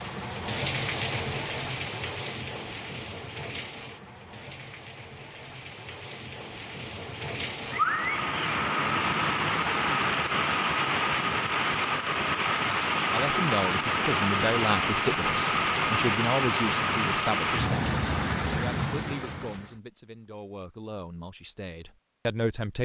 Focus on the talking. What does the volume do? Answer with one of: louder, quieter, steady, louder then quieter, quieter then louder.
quieter then louder.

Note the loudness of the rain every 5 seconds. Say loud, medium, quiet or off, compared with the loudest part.
medium, loud, loud, loud, off.